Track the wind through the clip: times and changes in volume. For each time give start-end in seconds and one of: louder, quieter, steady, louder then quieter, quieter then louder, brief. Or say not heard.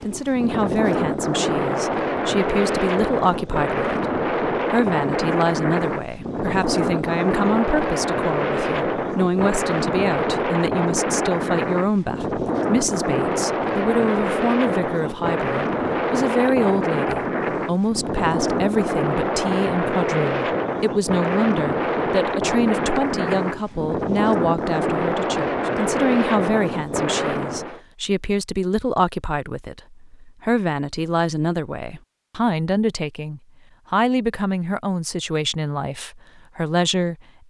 0.0-27.8 steady.